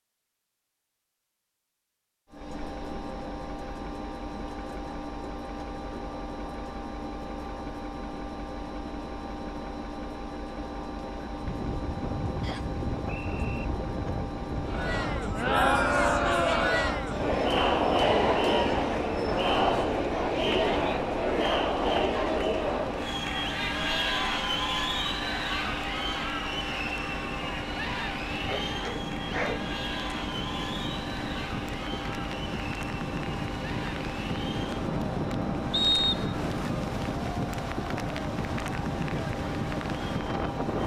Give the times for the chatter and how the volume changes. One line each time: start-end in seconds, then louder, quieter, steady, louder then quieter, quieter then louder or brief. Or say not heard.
14.7-40.8 quieter.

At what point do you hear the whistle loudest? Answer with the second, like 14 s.
36 s.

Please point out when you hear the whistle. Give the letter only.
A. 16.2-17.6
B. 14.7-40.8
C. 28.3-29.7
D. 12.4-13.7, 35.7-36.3
D.